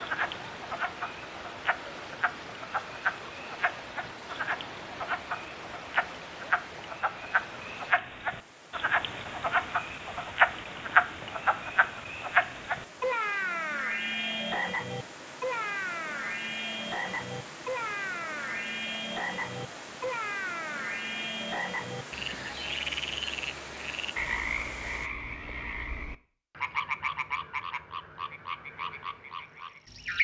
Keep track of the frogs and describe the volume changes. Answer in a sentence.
The volume of the frogs goes up, then down.